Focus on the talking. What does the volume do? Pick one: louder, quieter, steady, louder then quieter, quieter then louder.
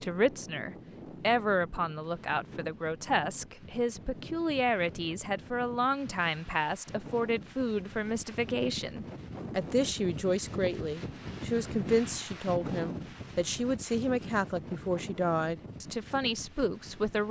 steady.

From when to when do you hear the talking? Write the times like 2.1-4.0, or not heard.
0.0-17.2.